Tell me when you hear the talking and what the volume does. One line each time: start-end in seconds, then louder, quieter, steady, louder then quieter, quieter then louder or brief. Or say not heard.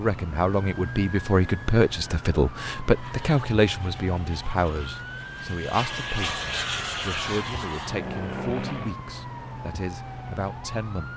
0.0-11.1 quieter.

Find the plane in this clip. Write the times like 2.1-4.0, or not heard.
2.8-8.9.